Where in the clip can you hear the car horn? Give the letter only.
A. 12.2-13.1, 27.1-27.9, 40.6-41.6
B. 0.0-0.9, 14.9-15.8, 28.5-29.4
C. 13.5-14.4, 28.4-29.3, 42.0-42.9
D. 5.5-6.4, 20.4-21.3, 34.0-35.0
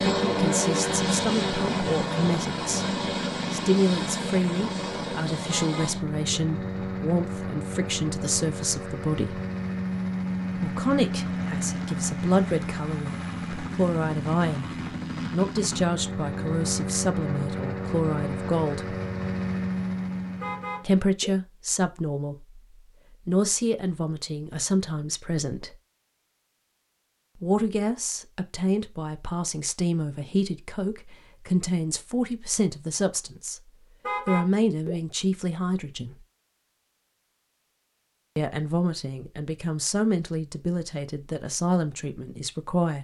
D.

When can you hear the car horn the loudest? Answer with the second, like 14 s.
34 s.